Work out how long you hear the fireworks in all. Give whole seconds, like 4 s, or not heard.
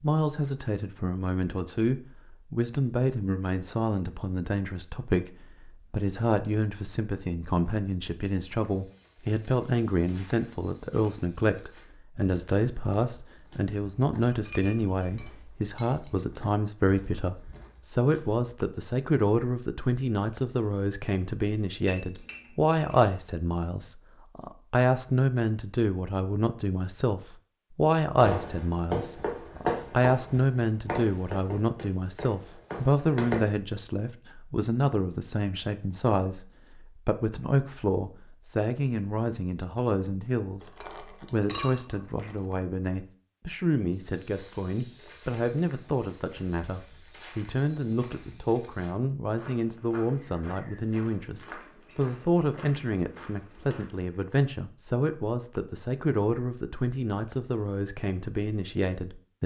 5 s.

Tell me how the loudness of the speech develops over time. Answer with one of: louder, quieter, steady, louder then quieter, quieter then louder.
steady.